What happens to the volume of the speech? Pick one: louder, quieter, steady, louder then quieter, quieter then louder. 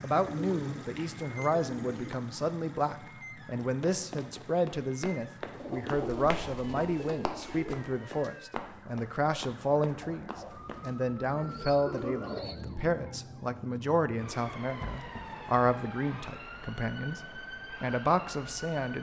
steady.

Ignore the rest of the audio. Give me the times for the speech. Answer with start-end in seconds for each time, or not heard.
0.0-18.9.